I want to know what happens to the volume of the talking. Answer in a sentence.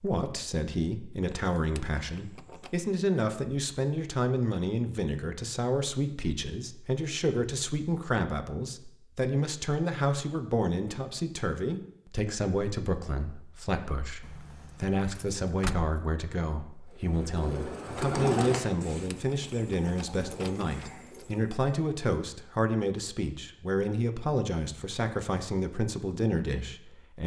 The volume of the talking stays about the same.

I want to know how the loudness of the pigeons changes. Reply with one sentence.
The loudness of the pigeons goes up, then down.